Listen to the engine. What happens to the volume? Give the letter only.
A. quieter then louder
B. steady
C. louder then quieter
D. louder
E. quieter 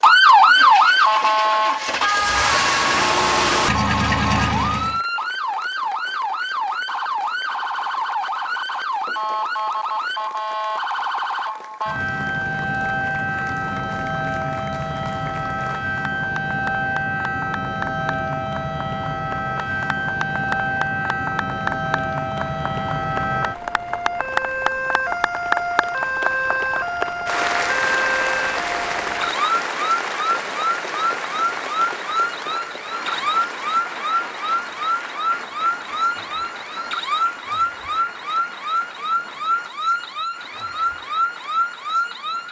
D.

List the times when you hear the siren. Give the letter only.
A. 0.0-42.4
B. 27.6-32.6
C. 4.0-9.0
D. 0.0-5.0
A.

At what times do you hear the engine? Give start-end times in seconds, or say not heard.
0.0-5.0.